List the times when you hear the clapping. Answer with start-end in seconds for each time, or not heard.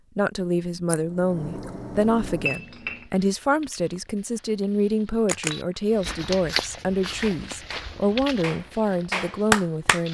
7.0-10.0.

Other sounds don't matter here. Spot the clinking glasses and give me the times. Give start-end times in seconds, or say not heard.
2.5-3.0, 5.5-6.2.